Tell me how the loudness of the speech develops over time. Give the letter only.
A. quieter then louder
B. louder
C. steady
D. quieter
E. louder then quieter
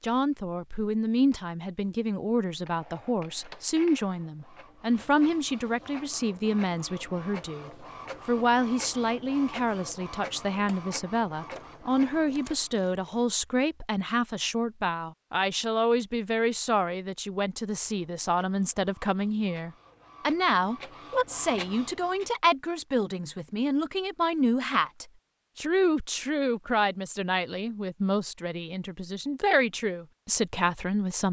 C.